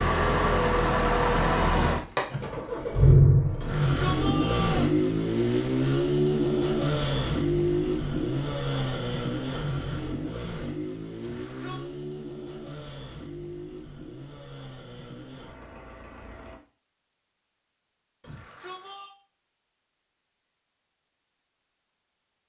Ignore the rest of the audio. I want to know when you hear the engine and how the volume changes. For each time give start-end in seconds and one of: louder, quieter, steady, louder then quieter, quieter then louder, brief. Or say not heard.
0.0-16.6 quieter.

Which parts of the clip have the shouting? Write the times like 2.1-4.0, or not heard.
3.6-5.0, 11.2-11.8, 18.2-19.1.